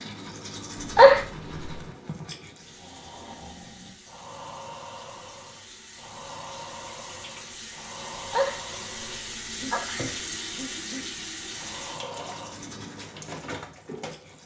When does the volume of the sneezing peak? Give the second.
1 s.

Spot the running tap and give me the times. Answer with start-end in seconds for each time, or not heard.
2.6-14.4.